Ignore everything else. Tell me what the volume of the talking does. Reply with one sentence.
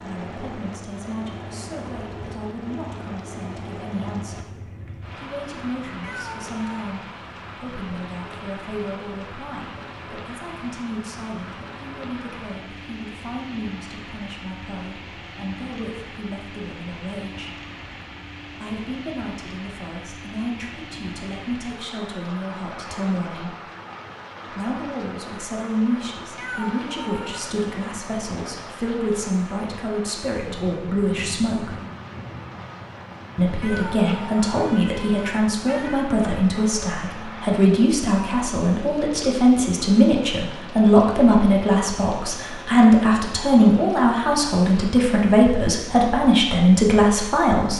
The volume of the talking goes up.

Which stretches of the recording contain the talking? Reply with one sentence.
You can hear the talking from 0.0 to 17.6 s, from 18.5 to 23.6 s, from 24.4 to 31.7 s and from 33.4 to 47.7 s.